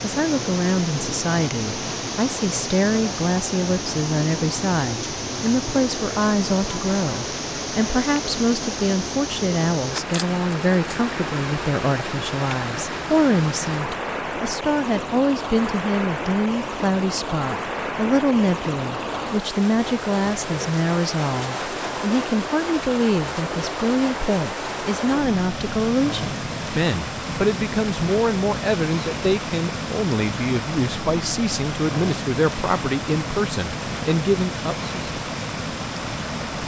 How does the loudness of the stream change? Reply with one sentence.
The volume of the stream stays about the same.